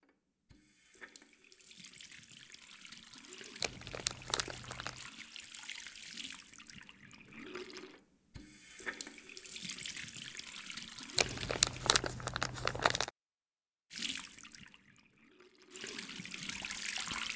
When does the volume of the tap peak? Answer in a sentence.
The loudest moment of the tap is at 17 seconds.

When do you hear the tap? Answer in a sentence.
You can hear the tap from 0.0 to 12.1 s and from 13.9 to 17.3 s.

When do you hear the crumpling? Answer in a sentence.
You can hear the crumpling from 3.6 to 5.0 s and from 11.2 to 13.1 s.